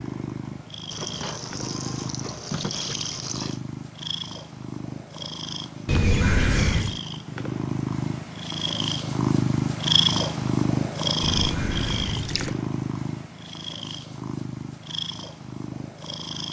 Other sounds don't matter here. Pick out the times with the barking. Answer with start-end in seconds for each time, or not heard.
not heard.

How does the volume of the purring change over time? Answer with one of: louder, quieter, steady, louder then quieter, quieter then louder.
louder then quieter.